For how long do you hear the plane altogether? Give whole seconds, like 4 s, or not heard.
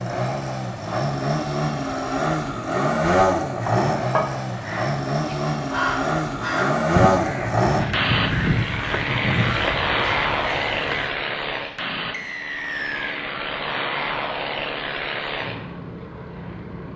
17 s.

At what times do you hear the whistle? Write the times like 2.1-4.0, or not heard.
12.1-13.2.